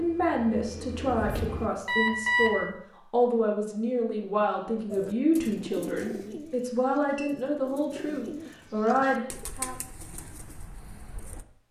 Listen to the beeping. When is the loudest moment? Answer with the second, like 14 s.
2 s.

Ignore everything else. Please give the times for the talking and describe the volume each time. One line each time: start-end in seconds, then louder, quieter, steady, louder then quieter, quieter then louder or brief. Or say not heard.
0.0-9.8 steady.